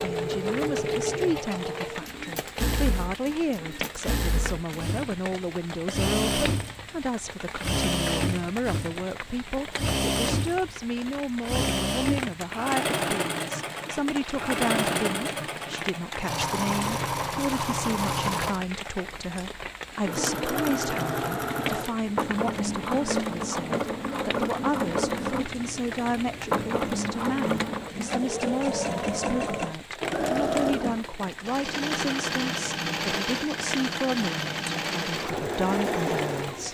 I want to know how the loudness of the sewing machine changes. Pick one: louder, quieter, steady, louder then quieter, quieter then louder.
steady.